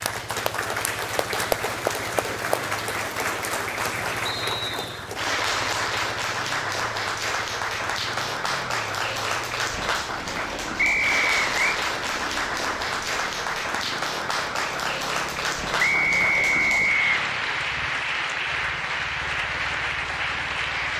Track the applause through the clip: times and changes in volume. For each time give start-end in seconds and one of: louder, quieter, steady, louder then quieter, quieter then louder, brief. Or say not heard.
0.0-20.9 steady.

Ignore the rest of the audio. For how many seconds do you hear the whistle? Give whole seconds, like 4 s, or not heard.
3 s.